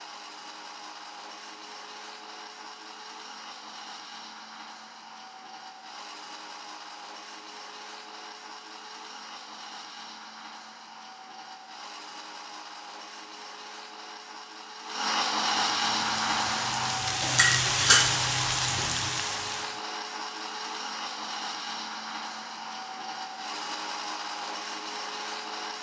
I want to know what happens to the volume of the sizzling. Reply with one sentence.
The loudness of the sizzling goes up, then down.